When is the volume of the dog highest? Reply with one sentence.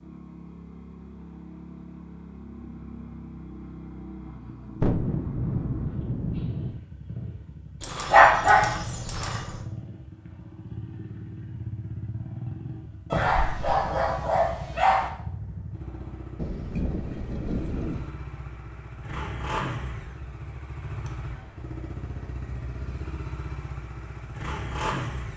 The volume of the dog peaks at 8 seconds.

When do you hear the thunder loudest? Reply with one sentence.
The volume of the thunder peaks at 5 seconds.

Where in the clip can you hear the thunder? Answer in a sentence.
You can hear the thunder from 4.8 to 6.8 s and from 16.4 to 18.1 s.